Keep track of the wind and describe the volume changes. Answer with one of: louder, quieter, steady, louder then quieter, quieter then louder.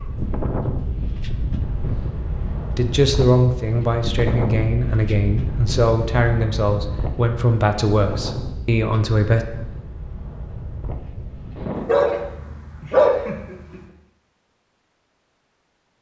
quieter.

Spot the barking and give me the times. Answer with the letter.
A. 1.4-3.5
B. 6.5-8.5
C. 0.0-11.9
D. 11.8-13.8
D.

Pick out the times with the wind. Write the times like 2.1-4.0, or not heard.
0.0-11.9.